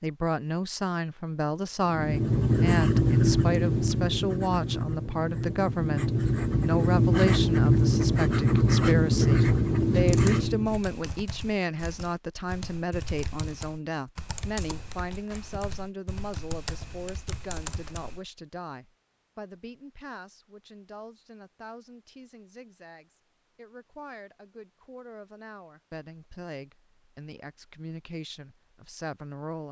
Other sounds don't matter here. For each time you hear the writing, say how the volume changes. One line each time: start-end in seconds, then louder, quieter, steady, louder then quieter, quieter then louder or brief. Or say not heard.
1.9-10.8 quieter then louder.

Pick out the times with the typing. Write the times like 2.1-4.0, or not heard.
10.1-18.2.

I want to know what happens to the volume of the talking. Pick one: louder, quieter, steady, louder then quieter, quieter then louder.
quieter.